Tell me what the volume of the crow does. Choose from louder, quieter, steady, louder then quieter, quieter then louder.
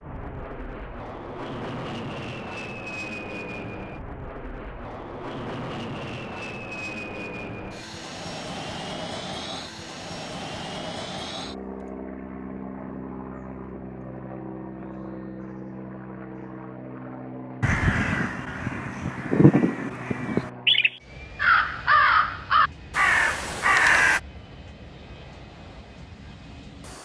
louder.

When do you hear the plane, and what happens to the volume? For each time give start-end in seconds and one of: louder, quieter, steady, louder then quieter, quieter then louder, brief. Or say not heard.
0.0-27.0 quieter.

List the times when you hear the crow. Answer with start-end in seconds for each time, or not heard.
17.6-24.2.